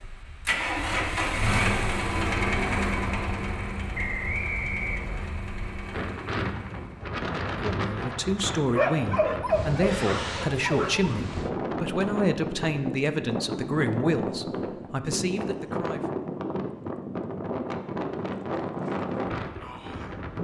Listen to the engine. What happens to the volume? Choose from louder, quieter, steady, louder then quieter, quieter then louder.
quieter.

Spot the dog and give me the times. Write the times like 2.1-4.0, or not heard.
8.8-11.2.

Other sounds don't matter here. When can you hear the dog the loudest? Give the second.
9 s.